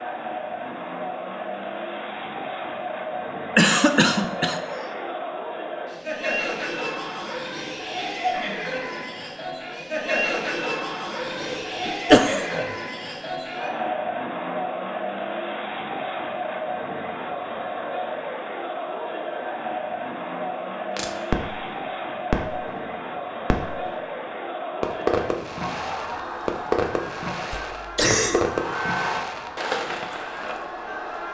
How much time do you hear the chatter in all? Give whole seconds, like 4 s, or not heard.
31 s.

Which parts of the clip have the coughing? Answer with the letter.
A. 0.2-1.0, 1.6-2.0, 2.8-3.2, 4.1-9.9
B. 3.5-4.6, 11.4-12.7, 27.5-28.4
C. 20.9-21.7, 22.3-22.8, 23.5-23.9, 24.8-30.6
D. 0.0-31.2
B.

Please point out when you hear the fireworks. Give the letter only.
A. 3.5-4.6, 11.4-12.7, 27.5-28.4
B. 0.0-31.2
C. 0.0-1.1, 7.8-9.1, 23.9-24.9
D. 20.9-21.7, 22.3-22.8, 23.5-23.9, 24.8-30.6
D.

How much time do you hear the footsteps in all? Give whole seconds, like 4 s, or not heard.
not heard.